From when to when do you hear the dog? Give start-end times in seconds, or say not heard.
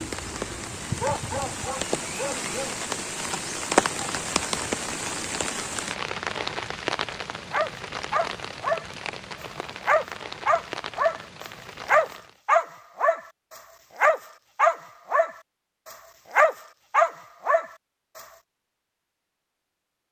0.0-2.8, 7.5-18.2.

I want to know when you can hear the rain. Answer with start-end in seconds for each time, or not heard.
0.0-12.4.